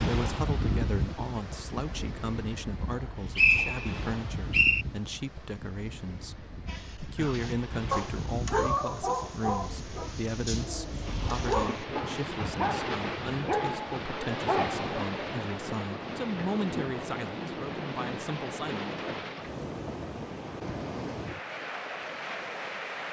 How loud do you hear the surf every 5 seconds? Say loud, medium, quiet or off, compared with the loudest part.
loud, medium, loud, loud, loud.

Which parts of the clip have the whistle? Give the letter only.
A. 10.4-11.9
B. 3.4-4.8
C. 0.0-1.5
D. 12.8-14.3
B.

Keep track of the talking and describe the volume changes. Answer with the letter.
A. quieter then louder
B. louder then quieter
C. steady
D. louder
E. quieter
C.